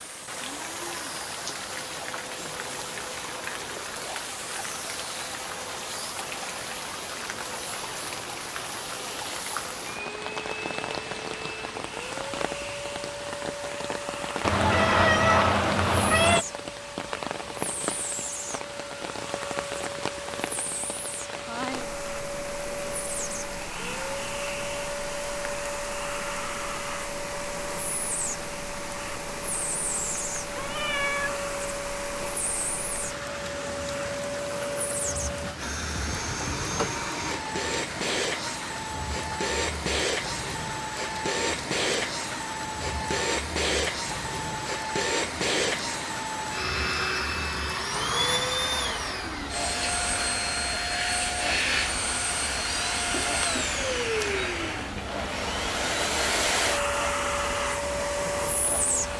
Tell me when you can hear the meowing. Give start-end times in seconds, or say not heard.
14.4-16.4, 30.6-31.4, 52.6-54.9.